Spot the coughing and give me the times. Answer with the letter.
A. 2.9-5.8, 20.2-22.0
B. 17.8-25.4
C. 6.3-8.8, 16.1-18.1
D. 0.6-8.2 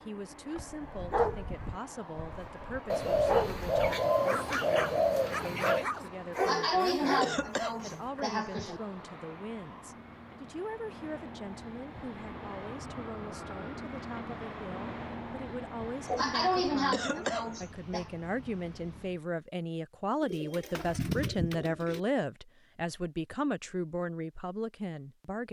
C.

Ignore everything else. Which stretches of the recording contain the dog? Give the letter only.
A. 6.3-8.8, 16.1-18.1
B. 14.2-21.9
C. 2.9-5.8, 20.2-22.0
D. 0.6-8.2
D.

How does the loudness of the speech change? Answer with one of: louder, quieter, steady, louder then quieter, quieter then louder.
louder.